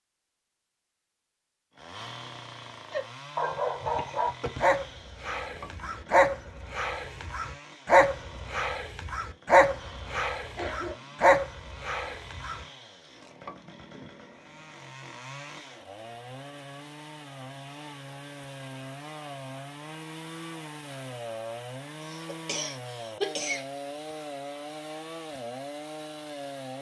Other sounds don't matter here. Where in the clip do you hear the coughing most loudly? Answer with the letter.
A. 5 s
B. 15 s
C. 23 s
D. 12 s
C.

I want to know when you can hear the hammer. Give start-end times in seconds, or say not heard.
not heard.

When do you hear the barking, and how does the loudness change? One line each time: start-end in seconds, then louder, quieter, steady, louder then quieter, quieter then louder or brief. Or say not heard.
2.9-12.7 steady.